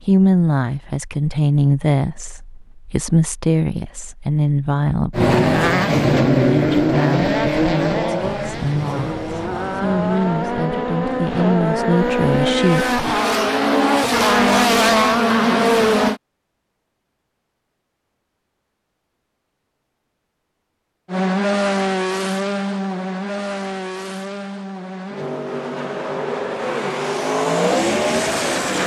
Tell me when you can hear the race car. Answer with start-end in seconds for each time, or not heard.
5.1-16.2, 21.1-28.8.